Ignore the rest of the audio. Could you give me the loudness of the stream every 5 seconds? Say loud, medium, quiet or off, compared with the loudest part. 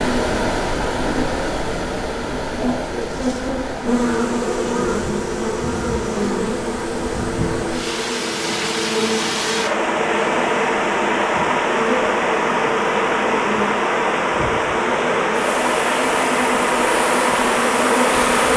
medium, medium, loud, loud.